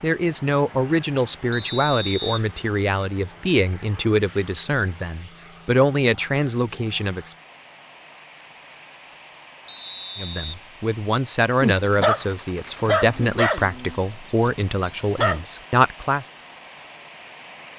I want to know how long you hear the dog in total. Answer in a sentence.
You can hear the dog for 4 seconds altogether.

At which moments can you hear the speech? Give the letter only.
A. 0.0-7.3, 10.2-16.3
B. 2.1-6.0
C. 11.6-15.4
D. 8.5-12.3
A.